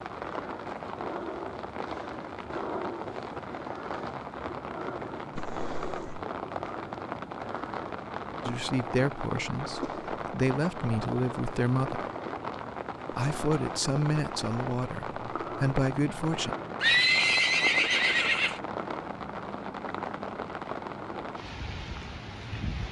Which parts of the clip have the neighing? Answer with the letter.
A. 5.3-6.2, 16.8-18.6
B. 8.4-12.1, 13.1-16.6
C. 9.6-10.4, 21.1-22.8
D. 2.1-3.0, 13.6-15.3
A.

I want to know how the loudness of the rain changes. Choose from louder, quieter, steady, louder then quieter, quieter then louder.
steady.